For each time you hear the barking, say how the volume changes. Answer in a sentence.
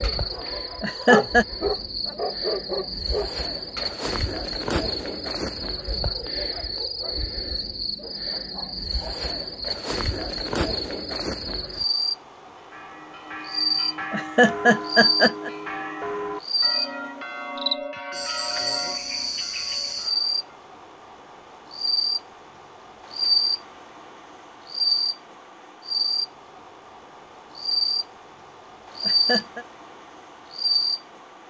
You can hear the barking from 0.0 to 4.0 s, getting louder then quieter.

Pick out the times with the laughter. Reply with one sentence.
You can hear the laughter from 0.8 to 1.4 s, from 14.1 to 15.5 s and from 29.0 to 29.6 s.